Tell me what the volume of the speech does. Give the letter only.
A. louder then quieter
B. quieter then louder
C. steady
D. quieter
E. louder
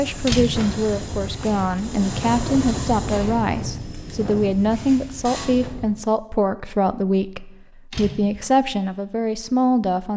C.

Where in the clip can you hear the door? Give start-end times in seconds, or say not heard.
0.2-0.7, 7.9-8.5.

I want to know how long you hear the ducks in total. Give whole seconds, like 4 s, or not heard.
not heard.